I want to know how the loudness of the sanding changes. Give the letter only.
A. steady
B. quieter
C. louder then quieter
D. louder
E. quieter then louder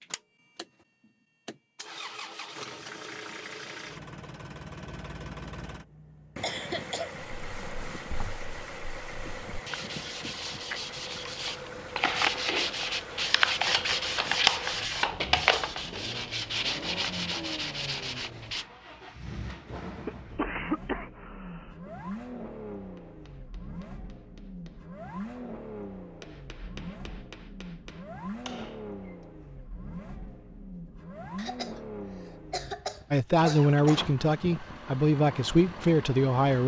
C.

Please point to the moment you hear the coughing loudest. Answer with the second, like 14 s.
21 s.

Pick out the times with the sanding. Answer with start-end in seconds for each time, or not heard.
7.3-18.6.